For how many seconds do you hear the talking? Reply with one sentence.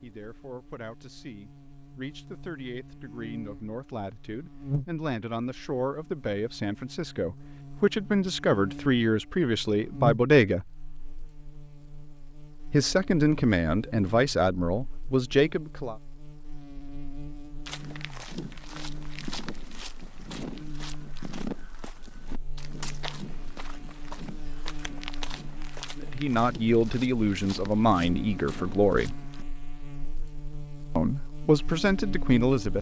The talking can be heard for 19 seconds in total.